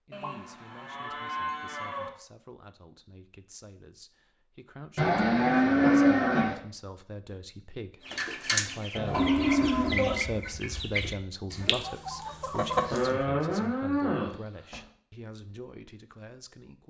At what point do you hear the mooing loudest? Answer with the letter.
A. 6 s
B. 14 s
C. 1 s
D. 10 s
A.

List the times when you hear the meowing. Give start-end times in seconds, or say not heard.
not heard.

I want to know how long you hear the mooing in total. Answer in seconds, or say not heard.
7 s.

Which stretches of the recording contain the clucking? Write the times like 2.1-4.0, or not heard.
8.1-13.2.